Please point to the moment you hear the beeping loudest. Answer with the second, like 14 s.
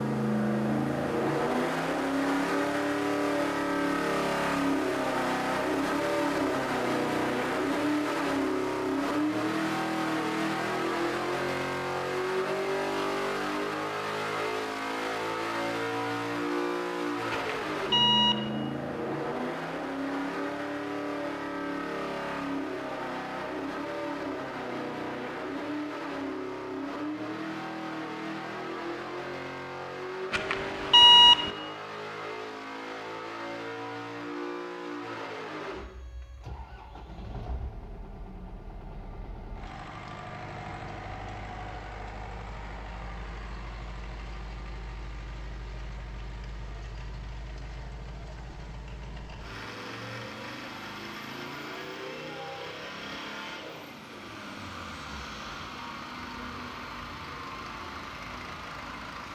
31 s.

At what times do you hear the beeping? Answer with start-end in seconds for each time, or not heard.
17.3-18.5, 30.3-31.5.